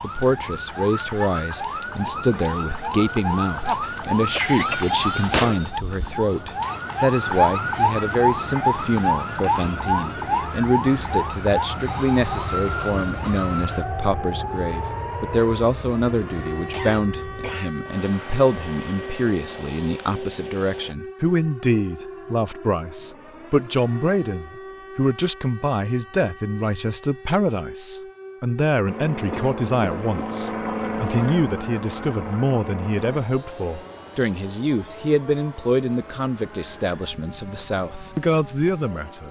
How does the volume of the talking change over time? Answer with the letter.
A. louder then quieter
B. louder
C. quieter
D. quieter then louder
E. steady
E.